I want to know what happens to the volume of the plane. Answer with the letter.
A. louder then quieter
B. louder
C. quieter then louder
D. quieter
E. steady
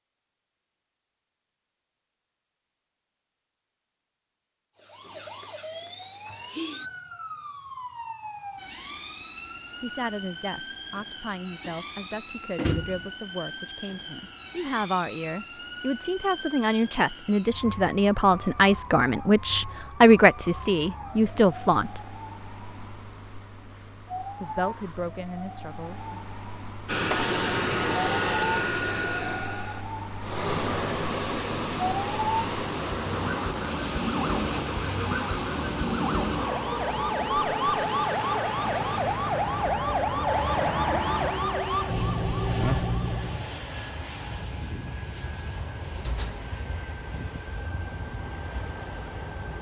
D.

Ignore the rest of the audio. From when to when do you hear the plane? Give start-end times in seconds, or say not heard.
26.9-49.5.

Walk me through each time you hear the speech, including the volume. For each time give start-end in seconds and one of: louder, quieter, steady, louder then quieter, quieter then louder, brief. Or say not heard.
9.8-22.0 louder
24.4-26.3 brief.